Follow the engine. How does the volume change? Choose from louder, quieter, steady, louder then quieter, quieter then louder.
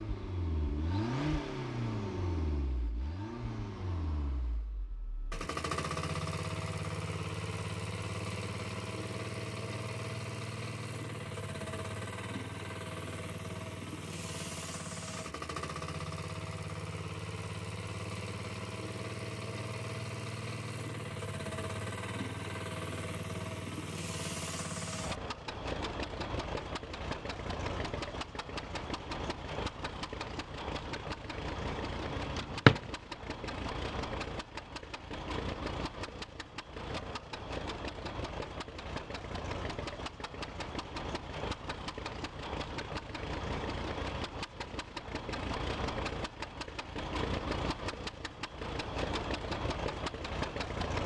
steady.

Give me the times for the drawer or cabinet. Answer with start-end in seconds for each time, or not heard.
32.1-32.9.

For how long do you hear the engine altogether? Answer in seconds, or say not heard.
51 s.